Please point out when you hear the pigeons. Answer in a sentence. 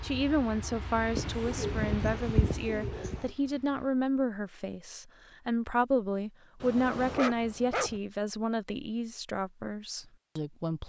The pigeons can be heard from 1.1 to 3.3 s.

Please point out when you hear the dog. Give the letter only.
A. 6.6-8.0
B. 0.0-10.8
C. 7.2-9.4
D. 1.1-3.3
A.